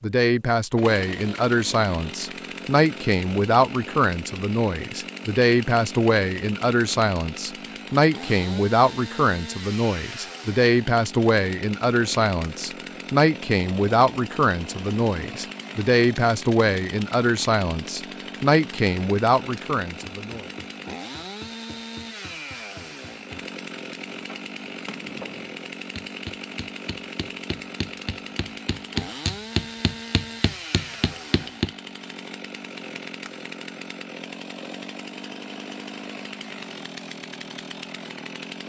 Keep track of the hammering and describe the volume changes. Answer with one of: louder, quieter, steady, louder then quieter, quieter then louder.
louder.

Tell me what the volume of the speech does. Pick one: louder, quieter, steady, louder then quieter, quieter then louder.
steady.